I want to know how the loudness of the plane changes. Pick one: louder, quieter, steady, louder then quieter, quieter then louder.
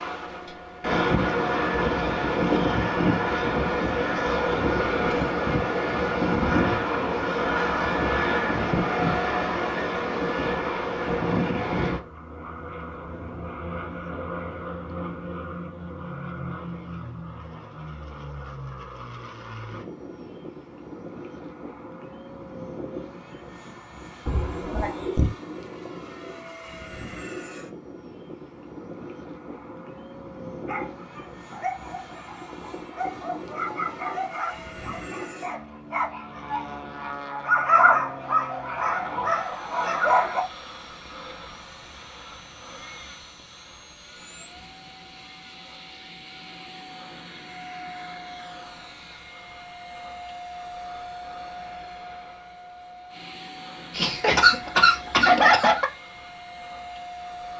quieter.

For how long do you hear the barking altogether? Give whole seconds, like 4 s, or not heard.
10 s.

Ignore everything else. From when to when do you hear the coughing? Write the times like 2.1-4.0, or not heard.
24.2-25.3, 53.9-55.9.